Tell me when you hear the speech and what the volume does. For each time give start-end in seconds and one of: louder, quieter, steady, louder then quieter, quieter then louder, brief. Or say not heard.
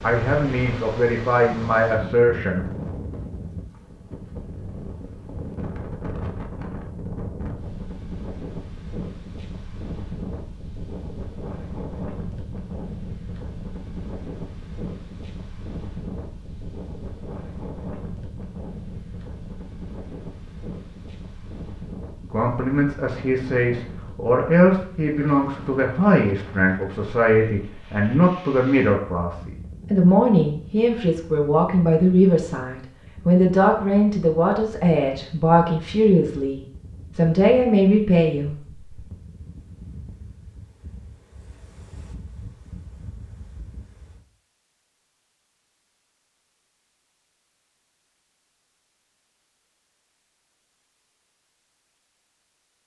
0.0-2.6 brief
22.2-38.9 steady.